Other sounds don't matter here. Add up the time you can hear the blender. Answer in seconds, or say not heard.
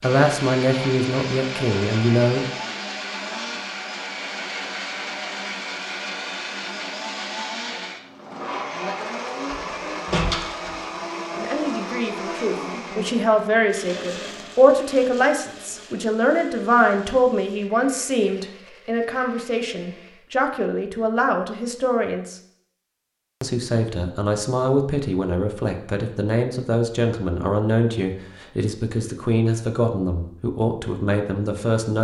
20 s.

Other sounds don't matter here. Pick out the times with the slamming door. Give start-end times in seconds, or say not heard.
9.5-11.0.